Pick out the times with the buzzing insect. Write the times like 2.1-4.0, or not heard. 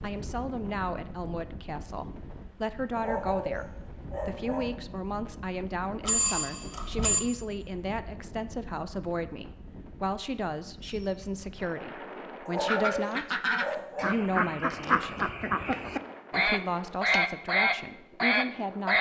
not heard.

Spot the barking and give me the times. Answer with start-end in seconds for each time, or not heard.
3.0-4.7, 12.4-14.1.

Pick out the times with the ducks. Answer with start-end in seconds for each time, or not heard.
12.7-18.9.